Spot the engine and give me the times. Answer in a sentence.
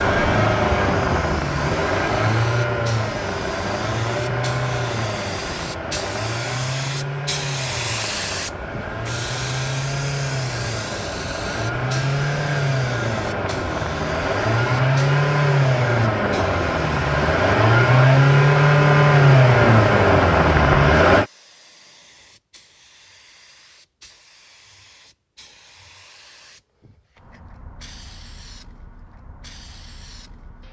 You can hear the engine from 0.0 to 21.2 s.